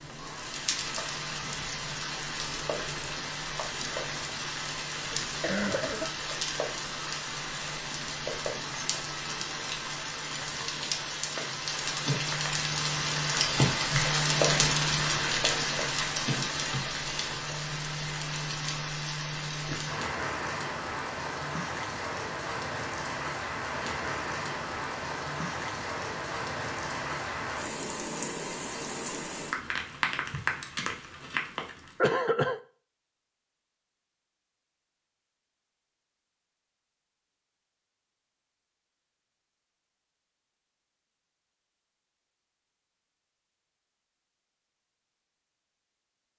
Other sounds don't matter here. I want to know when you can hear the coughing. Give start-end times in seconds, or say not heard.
5.2-6.2, 32.0-32.6.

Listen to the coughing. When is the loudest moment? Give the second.
32 s.